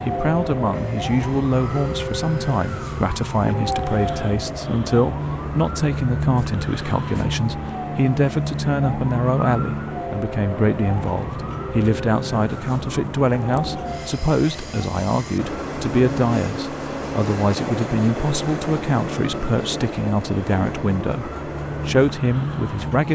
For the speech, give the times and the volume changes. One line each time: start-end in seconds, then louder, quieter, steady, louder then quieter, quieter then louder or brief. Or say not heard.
0.1-23.0 steady.